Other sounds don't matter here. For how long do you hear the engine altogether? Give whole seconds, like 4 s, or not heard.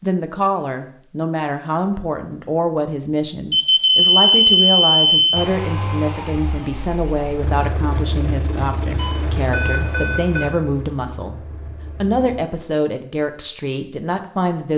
7 s.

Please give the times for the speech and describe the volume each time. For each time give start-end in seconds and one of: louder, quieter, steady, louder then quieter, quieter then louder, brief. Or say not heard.
0.0-14.7 steady.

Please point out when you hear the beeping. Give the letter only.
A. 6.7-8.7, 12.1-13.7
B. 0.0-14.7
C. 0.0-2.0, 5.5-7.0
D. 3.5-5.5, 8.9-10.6
D.